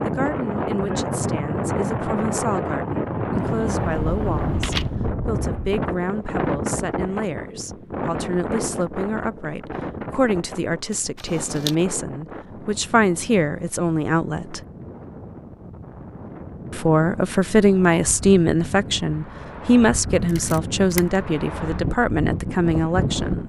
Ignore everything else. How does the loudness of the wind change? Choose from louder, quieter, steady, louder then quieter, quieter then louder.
quieter then louder.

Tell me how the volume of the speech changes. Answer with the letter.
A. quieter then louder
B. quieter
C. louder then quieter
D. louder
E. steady
D.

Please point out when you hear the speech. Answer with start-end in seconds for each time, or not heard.
0.0-14.6, 16.7-23.4.